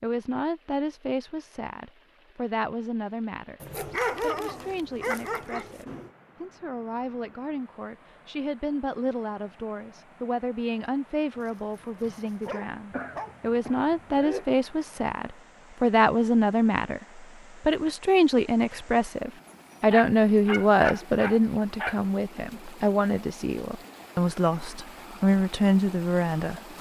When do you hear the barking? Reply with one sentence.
You can hear the barking from 3.6 to 6.1 s, from 11.3 to 13.3 s and from 19.4 to 22.0 s.